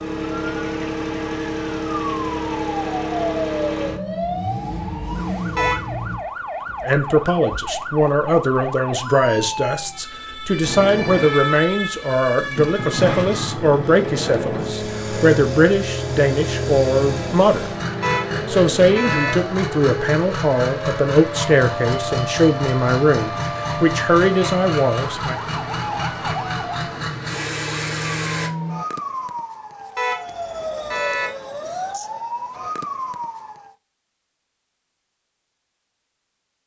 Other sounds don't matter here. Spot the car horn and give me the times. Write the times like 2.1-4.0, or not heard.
5.5-6.0, 18.0-19.4, 29.9-31.4.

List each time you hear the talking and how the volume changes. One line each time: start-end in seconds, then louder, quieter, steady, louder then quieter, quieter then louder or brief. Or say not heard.
6.8-17.7 steady
18.4-25.4 steady.